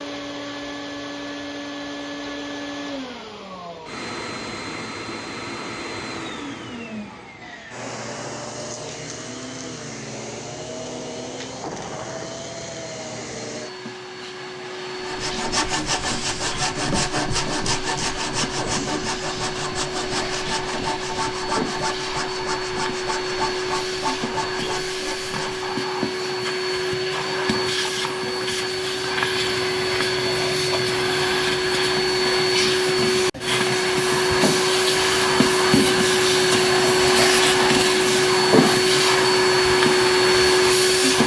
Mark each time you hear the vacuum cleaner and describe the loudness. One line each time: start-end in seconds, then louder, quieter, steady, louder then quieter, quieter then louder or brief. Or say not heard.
0.0-41.2 louder.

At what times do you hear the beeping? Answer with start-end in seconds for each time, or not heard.
not heard.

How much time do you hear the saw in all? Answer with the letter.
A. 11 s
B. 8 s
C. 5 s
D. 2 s
A.